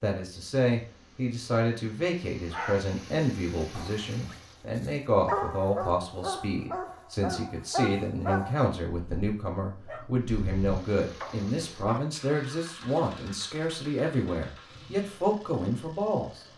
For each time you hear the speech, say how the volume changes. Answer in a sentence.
You can hear the speech from 0.0 to 16.4 s, at a steady volume.